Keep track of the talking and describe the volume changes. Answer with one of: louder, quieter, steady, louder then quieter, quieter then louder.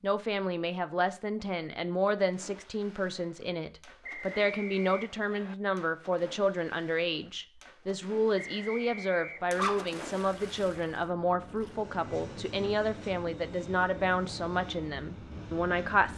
steady.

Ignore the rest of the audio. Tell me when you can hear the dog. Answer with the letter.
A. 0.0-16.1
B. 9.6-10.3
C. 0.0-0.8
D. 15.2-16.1
B.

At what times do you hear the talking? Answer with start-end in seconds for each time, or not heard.
0.0-16.1.